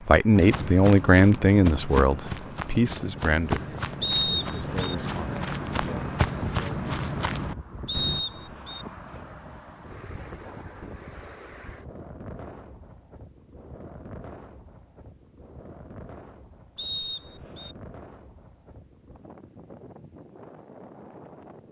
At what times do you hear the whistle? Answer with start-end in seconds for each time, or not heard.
4.0-5.0, 7.8-8.8, 16.8-17.8.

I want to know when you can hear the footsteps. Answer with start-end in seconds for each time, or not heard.
0.3-8.2.